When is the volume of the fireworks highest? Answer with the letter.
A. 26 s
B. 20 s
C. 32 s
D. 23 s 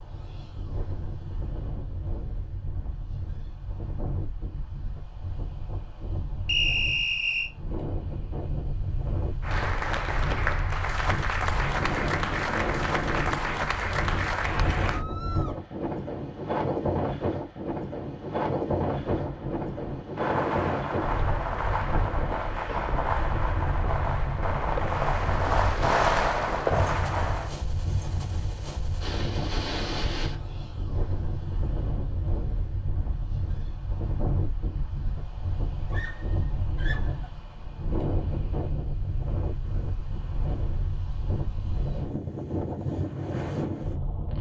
A.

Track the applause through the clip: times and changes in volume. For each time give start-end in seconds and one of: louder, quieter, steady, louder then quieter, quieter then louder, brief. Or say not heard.
9.4-15.1 steady.